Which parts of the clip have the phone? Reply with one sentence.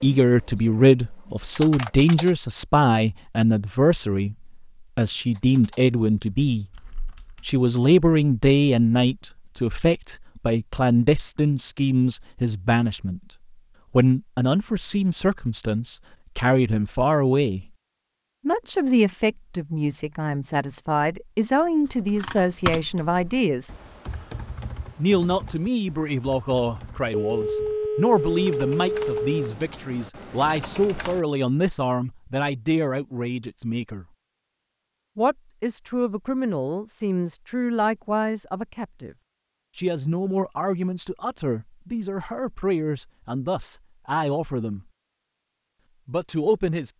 You can hear the phone from 27.1 to 29.6 s.